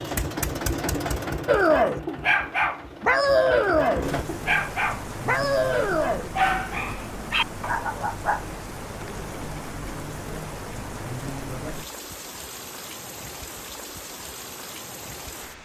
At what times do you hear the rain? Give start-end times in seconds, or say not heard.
4.0-15.6.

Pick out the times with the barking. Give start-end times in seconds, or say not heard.
1.4-8.4.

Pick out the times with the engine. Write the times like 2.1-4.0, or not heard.
0.0-4.2.